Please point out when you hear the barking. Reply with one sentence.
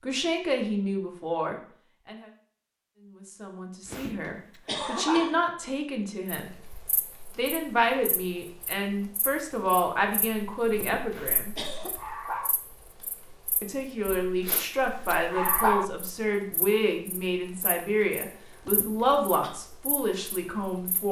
You can hear the barking from 3.9 to 5.3 s, from 11.1 to 12.6 s and from 14.4 to 15.8 s.